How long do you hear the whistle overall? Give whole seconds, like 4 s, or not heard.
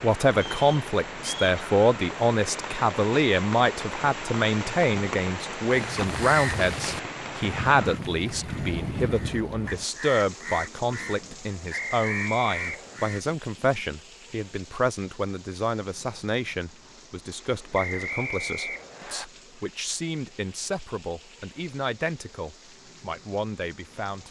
4 s.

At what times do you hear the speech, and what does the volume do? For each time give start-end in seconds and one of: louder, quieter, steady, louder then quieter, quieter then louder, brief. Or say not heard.
0.0-24.2 quieter.